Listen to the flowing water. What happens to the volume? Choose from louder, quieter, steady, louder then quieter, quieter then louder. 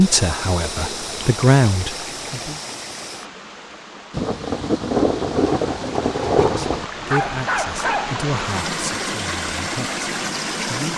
quieter then louder.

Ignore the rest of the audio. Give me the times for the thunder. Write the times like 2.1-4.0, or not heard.
4.1-6.8.